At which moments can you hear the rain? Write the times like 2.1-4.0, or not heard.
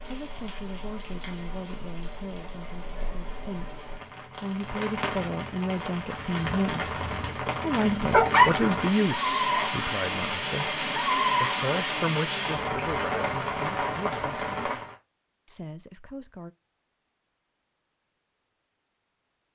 0.0-14.9.